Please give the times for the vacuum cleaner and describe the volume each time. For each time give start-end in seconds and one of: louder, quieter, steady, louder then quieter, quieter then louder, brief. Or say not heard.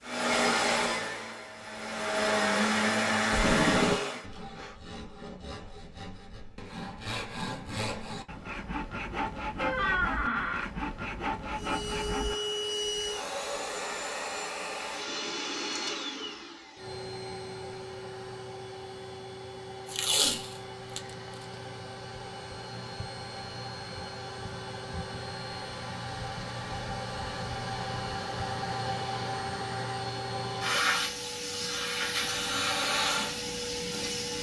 0.0-4.2 quieter then louder
11.5-34.3 quieter then louder.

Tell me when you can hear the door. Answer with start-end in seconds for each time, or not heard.
9.6-10.7.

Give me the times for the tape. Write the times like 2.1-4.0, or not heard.
3.3-4.0, 19.9-21.0.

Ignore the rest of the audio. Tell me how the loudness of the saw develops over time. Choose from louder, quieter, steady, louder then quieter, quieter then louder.
louder.